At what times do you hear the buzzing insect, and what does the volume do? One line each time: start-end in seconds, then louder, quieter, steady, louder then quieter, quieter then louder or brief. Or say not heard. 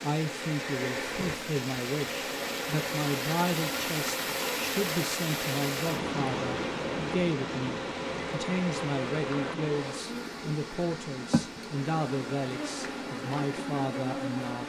0.0-14.6 steady.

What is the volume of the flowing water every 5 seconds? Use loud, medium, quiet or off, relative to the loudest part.
loud, loud, medium.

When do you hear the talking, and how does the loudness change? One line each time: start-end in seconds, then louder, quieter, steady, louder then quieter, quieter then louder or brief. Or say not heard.
0.0-14.6 steady.